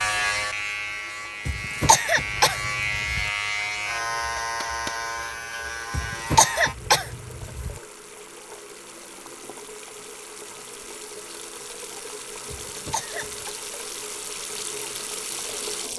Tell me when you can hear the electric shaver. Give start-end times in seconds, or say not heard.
0.0-6.8.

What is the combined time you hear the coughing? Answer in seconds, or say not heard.
5 s.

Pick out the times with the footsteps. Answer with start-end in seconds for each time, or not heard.
not heard.